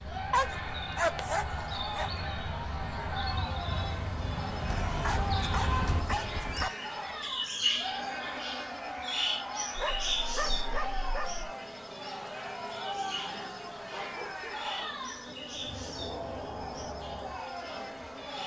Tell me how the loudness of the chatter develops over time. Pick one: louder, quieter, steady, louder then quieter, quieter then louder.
steady.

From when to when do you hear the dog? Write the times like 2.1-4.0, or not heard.
0.3-2.1, 4.7-6.7, 9.8-11.6, 13.9-14.7.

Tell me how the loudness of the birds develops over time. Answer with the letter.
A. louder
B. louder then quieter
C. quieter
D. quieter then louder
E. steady
B.